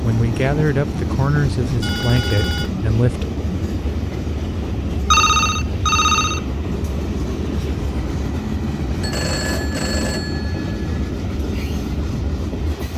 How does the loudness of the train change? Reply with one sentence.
The loudness of the train stays about the same.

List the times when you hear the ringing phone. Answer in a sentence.
The ringing phone can be heard from 1.6 to 2.7 s, from 5.1 to 6.5 s and from 9.0 to 10.8 s.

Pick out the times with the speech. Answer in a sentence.
You can hear the speech from 0.0 to 3.3 s.